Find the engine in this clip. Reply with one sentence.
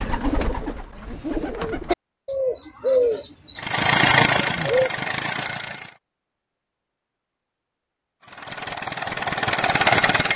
The engine can be heard from 3.5 to 6.0 s and from 8.2 to 10.3 s.